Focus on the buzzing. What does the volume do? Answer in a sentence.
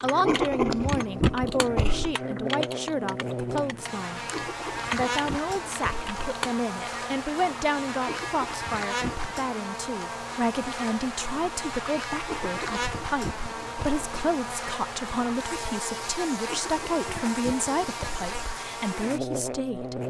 The loudness of the buzzing stays about the same.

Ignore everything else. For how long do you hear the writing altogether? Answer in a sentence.
You can hear the writing for 9 seconds altogether.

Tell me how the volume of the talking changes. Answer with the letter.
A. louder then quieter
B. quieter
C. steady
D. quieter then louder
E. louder
C.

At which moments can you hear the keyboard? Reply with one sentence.
The keyboard can be heard from 0.0 to 6.6 s.